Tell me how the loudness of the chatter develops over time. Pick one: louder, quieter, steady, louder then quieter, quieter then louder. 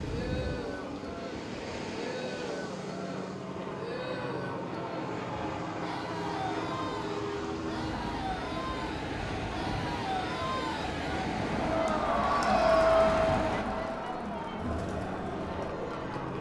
louder.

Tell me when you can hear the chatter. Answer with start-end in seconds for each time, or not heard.
0.0-16.3.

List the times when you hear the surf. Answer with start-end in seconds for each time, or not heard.
0.0-13.7.